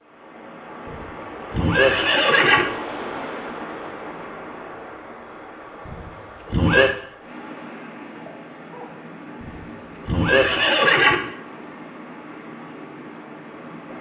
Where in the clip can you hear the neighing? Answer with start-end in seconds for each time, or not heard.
0.9-2.6, 5.8-6.9, 9.4-11.2.